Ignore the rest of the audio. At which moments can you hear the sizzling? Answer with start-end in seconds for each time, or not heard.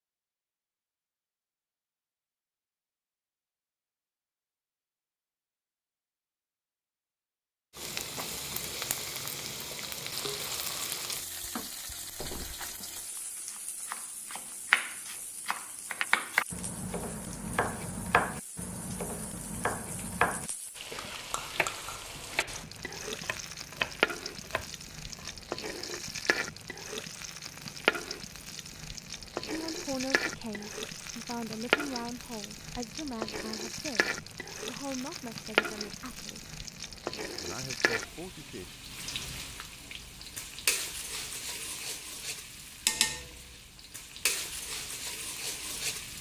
7.8-46.1.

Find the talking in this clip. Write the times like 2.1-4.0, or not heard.
29.4-36.5, 37.4-38.9.